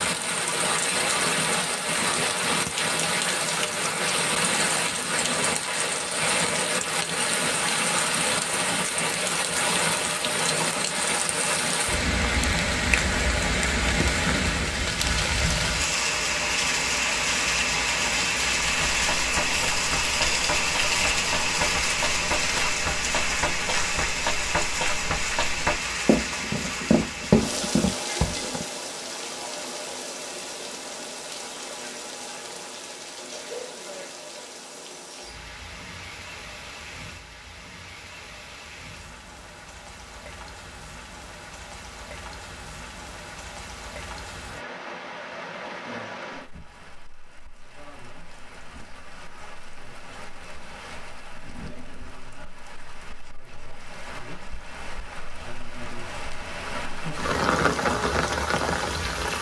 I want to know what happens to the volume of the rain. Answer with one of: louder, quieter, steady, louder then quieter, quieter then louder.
quieter then louder.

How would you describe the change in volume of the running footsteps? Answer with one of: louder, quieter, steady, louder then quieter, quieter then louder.
louder.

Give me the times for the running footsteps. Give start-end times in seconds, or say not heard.
18.6-28.6.